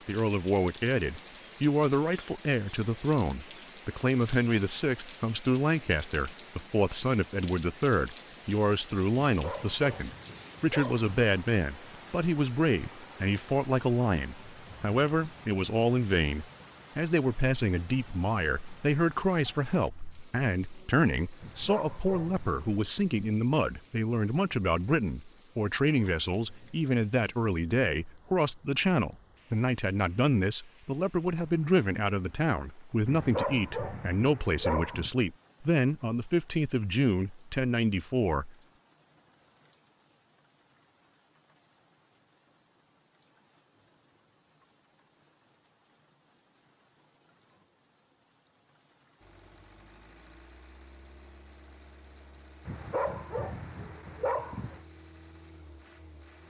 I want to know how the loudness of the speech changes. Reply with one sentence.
The volume of the speech stays about the same.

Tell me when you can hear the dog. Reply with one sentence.
The dog can be heard from 9.3 to 11.1 s, from 21.4 to 22.9 s, from 33.0 to 35.1 s and from 52.6 to 54.8 s.